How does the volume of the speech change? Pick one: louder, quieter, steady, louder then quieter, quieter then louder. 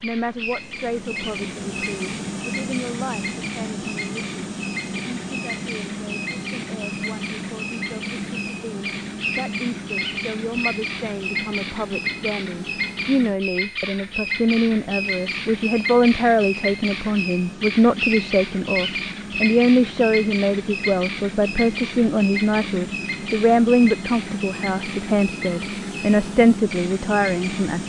louder.